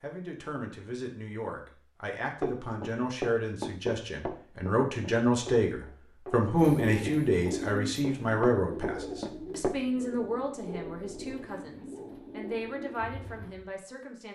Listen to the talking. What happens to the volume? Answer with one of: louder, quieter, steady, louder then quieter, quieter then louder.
louder then quieter.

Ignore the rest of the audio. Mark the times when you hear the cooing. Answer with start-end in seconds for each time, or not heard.
6.5-13.7.